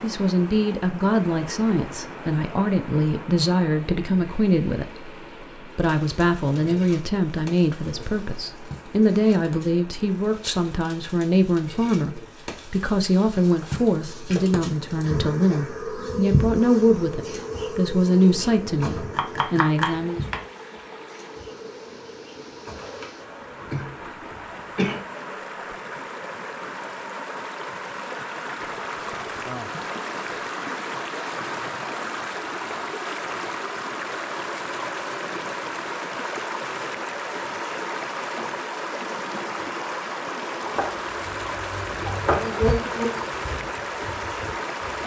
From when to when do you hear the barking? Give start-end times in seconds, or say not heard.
not heard.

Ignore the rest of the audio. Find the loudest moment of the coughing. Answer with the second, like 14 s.
25 s.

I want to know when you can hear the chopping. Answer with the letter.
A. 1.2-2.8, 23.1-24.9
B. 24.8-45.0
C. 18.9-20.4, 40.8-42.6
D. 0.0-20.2
C.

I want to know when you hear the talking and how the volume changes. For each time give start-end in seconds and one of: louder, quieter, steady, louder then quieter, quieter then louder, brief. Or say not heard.
0.0-20.2 steady.